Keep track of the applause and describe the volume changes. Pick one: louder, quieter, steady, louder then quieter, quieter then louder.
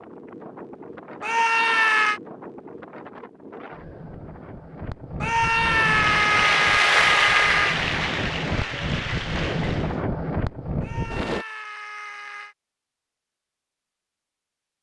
quieter.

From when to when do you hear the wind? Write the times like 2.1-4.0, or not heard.
0.0-11.4.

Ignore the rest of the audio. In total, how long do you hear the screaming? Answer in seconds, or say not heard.
5 s.